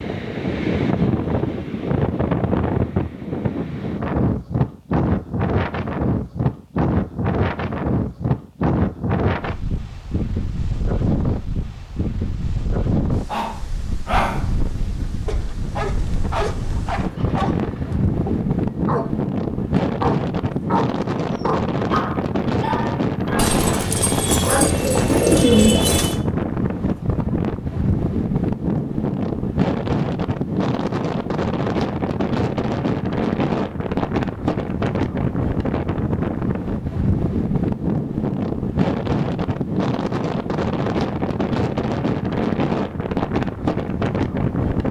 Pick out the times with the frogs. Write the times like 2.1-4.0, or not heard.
not heard.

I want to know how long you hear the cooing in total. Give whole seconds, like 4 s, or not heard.
3 s.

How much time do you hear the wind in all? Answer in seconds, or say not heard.
45 s.